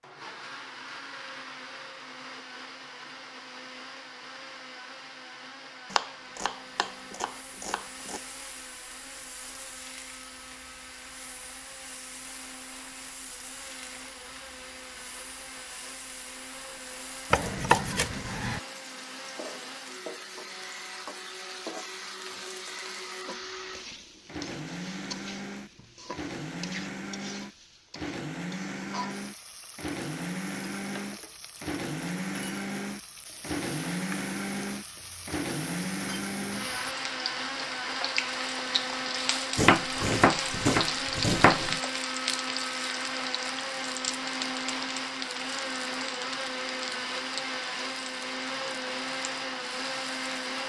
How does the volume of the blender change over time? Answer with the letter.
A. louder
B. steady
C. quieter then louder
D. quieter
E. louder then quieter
A.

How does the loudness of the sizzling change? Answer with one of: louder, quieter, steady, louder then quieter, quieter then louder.
louder.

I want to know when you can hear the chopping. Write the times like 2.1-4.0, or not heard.
5.9-8.2, 17.3-18.6, 39.5-41.8.